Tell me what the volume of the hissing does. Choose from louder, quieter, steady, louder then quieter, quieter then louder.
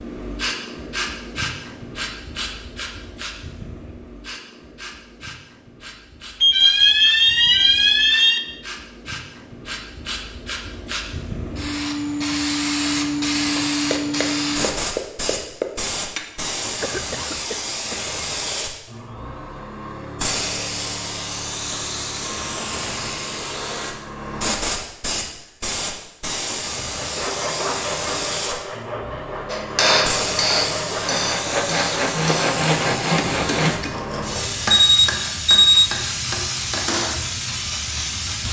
louder.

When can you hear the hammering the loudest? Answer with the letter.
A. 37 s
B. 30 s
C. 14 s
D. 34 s
B.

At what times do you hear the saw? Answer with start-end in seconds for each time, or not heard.
26.9-34.6.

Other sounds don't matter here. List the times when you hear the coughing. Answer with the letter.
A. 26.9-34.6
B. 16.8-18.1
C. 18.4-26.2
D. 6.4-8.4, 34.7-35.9
B.